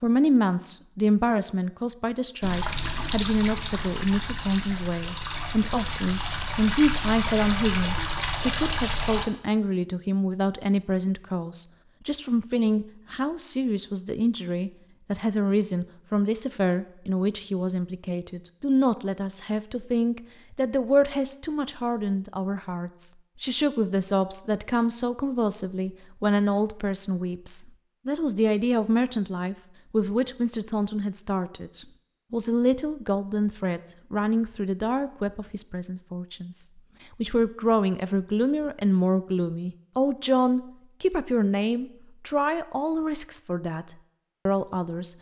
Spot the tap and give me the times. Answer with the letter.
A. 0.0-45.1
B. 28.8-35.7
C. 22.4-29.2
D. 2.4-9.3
D.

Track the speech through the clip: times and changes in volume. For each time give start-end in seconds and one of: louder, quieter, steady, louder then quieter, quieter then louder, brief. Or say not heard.
0.0-45.1 steady.